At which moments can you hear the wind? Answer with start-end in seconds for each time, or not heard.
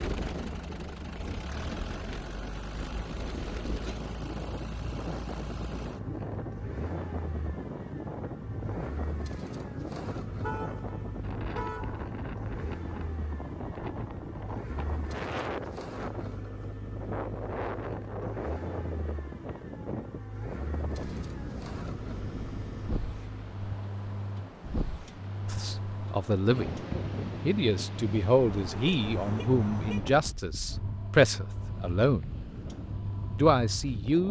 0.0-34.2.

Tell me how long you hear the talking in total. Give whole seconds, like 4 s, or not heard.
7 s.